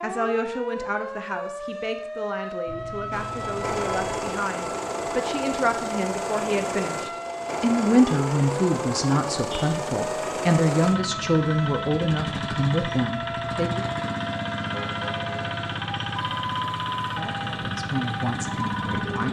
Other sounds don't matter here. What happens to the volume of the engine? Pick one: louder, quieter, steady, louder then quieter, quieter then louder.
steady.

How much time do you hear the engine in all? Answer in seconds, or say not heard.
16 s.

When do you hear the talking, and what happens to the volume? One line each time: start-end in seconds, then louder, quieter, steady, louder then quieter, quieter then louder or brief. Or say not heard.
0.0-13.8 louder
17.1-19.2 brief.